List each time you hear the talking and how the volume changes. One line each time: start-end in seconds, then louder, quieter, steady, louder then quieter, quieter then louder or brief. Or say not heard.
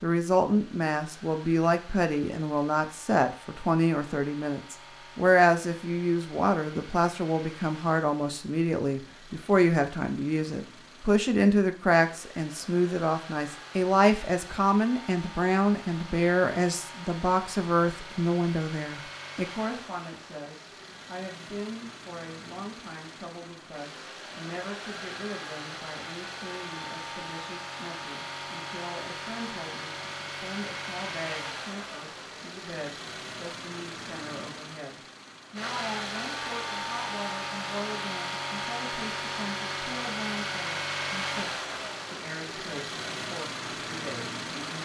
0.0-44.8 quieter.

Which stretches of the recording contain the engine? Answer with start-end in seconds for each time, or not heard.
0.0-44.8.